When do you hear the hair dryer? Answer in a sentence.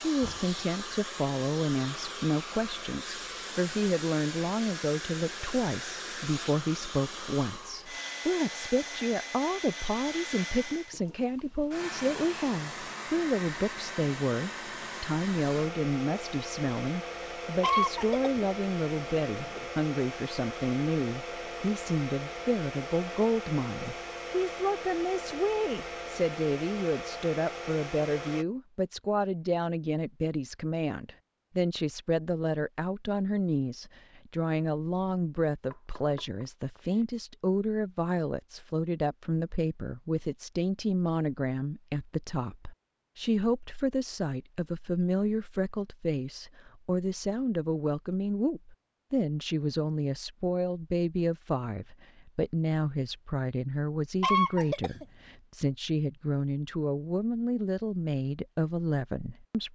The hair dryer can be heard from 0.0 to 28.4 s.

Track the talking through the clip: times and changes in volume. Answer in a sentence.
You can hear the talking from 0.0 to 59.6 s, at a steady volume.